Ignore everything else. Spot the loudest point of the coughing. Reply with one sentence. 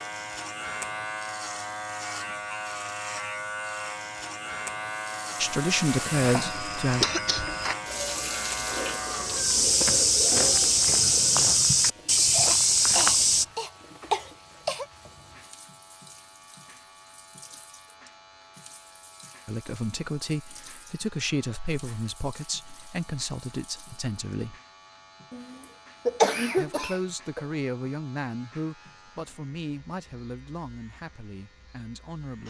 The volume of the coughing peaks at 26 seconds.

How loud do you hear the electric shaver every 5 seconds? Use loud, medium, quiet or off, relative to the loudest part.
loud, loud, quiet, quiet, quiet, quiet, quiet.